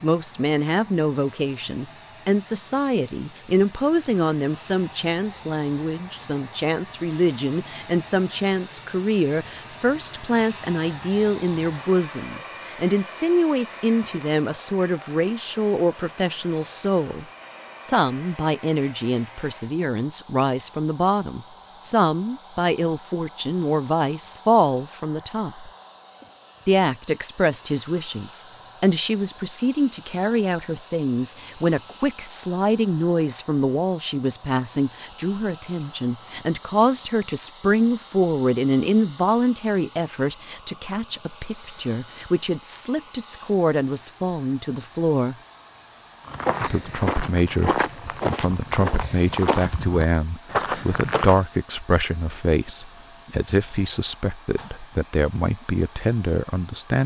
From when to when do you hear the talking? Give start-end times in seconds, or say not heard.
0.0-17.2, 17.9-25.7, 26.6-45.4, 46.6-57.0.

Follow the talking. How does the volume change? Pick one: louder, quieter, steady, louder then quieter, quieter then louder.
steady.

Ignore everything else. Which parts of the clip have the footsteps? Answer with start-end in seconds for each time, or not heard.
46.2-51.5.